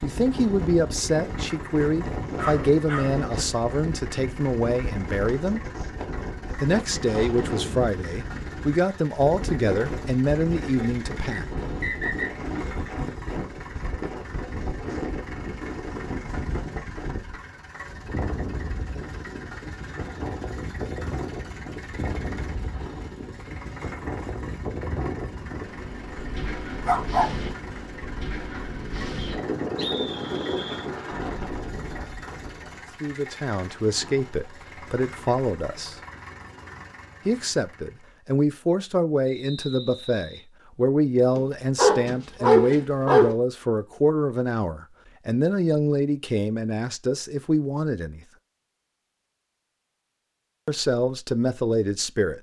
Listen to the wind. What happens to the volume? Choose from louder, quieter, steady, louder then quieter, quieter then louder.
steady.